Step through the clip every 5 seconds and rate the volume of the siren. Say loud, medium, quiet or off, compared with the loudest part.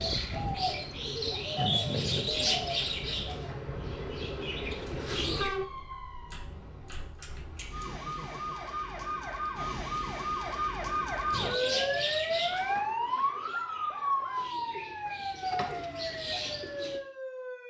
off, medium, loud, medium.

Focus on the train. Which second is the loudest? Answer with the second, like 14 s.
5 s.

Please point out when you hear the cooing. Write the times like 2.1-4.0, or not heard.
0.0-5.5, 11.3-17.0.